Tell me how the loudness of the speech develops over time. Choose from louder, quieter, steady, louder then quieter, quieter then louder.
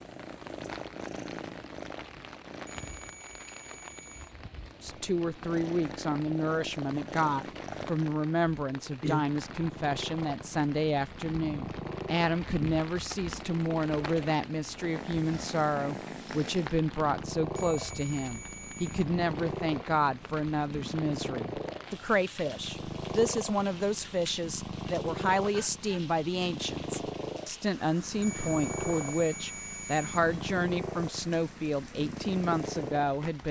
steady.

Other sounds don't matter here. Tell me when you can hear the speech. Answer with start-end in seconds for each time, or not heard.
4.8-33.4.